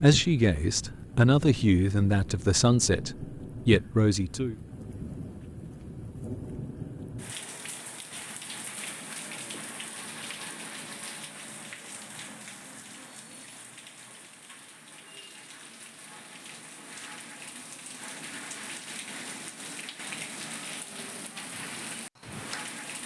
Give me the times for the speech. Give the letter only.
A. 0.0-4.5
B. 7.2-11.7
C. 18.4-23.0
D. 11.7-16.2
A.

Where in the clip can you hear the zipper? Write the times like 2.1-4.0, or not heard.
not heard.